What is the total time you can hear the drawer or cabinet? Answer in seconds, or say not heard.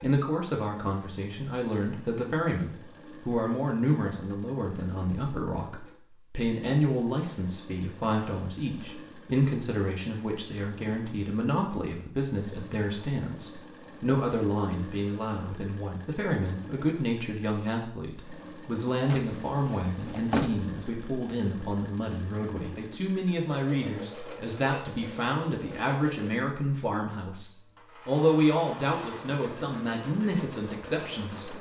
2 s.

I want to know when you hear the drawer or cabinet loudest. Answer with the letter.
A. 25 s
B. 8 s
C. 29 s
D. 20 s
D.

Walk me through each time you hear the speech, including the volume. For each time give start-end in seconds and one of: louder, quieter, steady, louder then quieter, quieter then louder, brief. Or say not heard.
0.0-31.5 steady.